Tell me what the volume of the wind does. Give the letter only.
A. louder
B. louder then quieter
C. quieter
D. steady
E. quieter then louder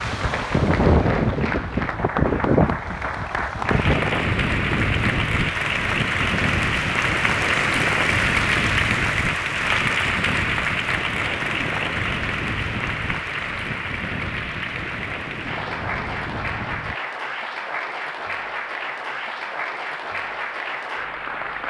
C.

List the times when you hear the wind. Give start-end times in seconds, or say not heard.
0.0-16.9.